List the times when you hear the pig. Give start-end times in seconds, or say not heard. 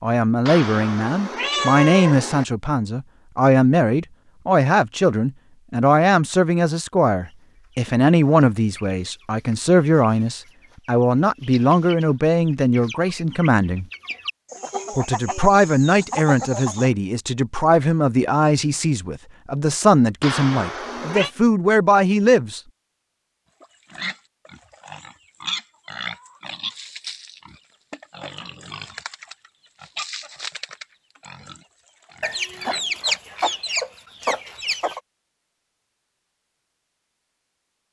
23.6-33.5.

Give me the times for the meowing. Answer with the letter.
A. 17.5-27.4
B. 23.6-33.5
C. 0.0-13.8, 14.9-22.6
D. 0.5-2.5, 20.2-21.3
D.